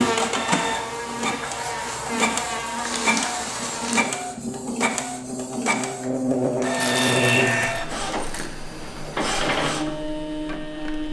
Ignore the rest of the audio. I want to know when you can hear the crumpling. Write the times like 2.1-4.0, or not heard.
2.8-4.0, 6.8-8.5.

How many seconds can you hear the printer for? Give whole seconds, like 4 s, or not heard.
11 s.